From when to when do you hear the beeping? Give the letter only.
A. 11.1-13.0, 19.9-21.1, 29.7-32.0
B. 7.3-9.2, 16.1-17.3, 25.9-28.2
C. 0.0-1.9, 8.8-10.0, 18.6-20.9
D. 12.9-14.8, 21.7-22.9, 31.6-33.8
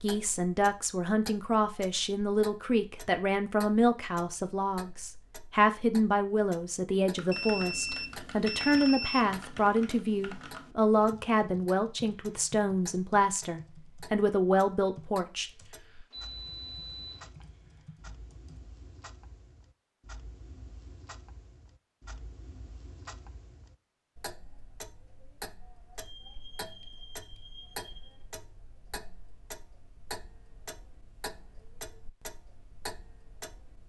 B.